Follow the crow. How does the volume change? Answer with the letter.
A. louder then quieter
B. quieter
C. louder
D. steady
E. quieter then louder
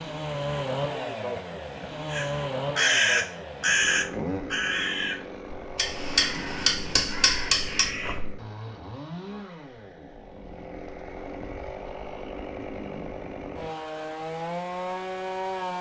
B.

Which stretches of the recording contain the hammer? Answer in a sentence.
The hammer can be heard from 5.8 to 7.9 s.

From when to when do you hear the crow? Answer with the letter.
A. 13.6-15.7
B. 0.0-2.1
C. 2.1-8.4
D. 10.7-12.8
C.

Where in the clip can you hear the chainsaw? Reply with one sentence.
You can hear the chainsaw from 0.0 to 15.7 s.